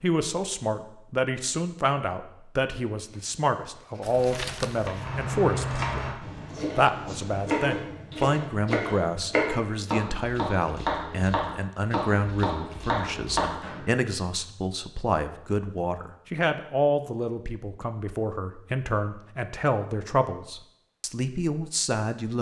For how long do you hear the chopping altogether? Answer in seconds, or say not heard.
11 s.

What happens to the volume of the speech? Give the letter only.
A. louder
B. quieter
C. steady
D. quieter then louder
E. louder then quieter
C.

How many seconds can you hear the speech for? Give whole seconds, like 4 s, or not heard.
22 s.